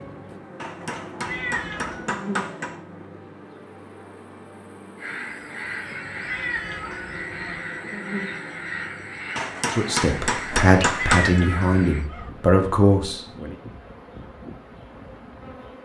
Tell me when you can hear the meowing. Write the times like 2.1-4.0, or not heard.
1.2-2.1, 6.2-7.6, 10.9-12.3.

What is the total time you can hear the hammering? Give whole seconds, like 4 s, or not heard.
4 s.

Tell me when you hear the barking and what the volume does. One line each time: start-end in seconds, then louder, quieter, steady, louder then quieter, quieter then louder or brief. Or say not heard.
not heard.